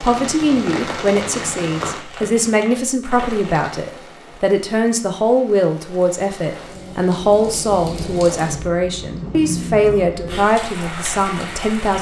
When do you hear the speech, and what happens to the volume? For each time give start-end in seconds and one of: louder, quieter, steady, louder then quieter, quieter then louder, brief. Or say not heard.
0.0-11.9 steady.